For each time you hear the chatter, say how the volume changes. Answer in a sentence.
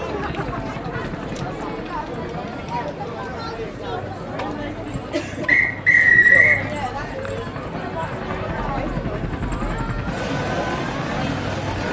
The chatter can be heard from 0.0 to 11.8 s, at a steady volume.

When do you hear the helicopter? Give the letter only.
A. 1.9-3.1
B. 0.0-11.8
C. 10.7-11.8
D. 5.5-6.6
B.